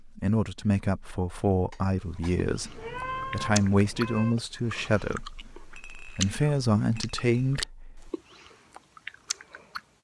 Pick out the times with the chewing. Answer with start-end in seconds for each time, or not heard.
2.4-9.8.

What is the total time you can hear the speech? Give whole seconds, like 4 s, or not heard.
8 s.